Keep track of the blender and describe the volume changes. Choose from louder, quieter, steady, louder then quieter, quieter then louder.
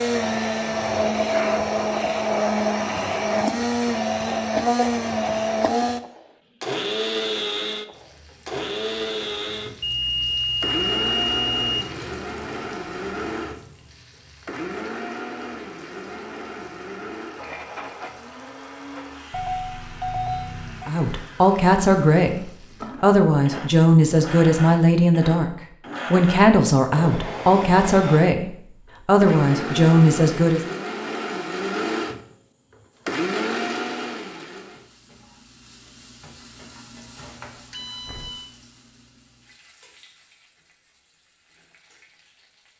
quieter then louder.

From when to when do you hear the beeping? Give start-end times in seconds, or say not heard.
9.8-11.8, 19.3-20.9, 37.7-38.5.